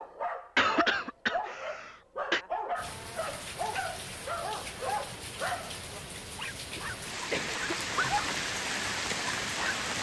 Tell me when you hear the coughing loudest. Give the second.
1 s.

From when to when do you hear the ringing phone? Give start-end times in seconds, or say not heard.
not heard.